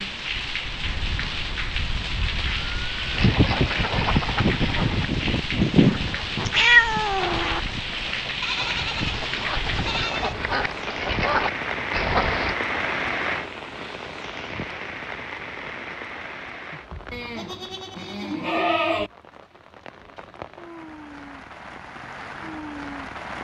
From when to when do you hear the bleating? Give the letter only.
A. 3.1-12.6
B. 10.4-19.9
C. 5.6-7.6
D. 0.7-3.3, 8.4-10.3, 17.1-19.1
D.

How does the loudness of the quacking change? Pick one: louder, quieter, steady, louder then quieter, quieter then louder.
quieter then louder.